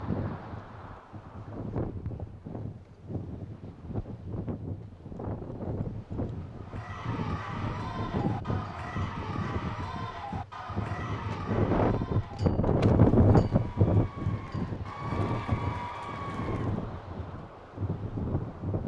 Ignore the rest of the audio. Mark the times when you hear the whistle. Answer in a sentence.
You can't hear the whistle here.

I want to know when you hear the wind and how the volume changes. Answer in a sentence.
You can hear the wind from 0.0 to 18.8 s, getting louder then quieter.